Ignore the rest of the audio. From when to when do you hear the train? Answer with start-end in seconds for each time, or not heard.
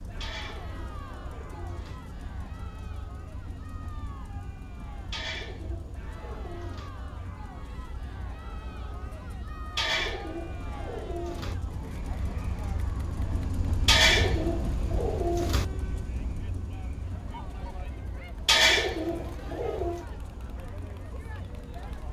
0.0-22.0.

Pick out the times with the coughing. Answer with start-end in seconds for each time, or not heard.
not heard.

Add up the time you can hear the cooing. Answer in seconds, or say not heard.
9 s.